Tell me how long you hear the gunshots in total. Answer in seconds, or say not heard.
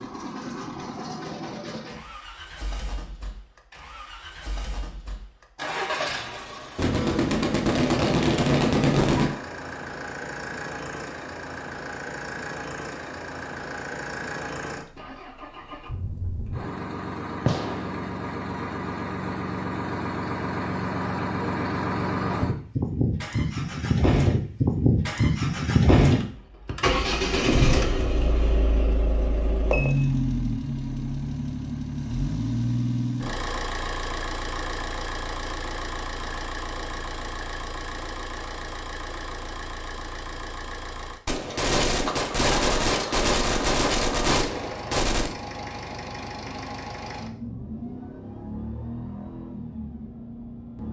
7 s.